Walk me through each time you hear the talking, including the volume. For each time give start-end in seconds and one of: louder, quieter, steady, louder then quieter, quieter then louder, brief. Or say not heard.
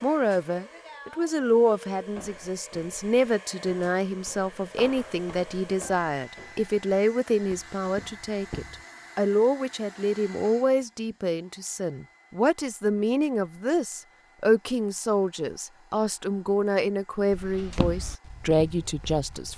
0.0-19.5 steady.